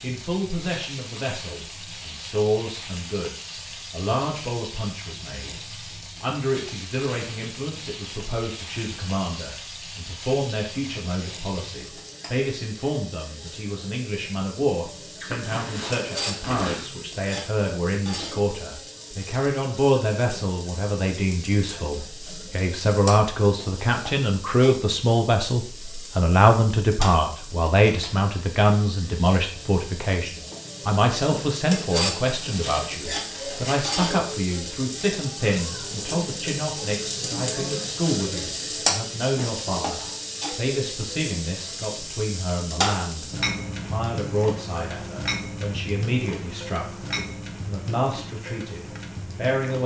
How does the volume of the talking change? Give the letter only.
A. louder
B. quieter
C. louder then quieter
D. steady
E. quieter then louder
C.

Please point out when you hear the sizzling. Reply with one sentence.
The sizzling can be heard from 0.0 to 49.8 s.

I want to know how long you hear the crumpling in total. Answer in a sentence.
The crumpling can be heard for 3 seconds in total.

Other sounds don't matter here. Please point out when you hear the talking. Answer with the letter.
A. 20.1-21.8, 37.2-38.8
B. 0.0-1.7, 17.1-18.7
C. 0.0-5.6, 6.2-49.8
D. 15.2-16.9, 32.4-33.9
C.